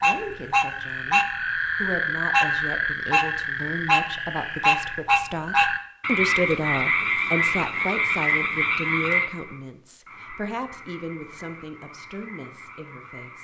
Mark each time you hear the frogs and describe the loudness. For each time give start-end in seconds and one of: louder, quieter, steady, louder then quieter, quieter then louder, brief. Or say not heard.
0.0-13.3 quieter.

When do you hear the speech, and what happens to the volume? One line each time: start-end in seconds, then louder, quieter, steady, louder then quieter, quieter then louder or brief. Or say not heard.
0.0-13.3 louder then quieter.